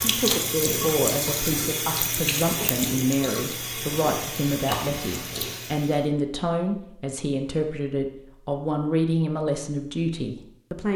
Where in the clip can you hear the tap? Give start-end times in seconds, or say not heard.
0.0-6.0.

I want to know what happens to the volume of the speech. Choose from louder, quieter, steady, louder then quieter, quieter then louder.
steady.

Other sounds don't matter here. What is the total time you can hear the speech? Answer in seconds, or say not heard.
11 s.